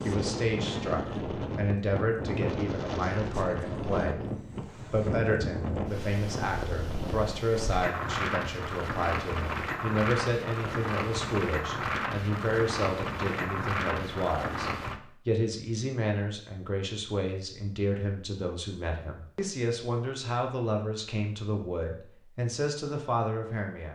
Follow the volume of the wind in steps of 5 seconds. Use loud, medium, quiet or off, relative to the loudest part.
loud, loud, loud, off, off.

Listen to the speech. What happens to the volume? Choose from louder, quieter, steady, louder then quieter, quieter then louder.
steady.